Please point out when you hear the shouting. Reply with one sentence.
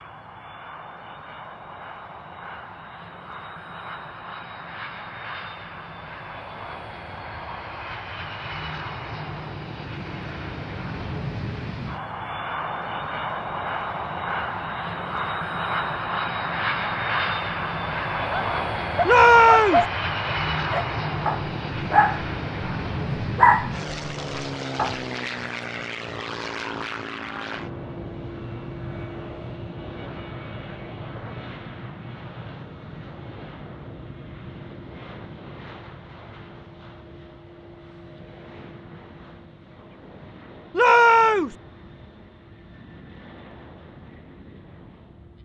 The shouting can be heard from 19.1 to 19.9 s and from 40.8 to 41.5 s.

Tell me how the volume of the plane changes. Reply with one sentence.
The volume of the plane goes up, then down.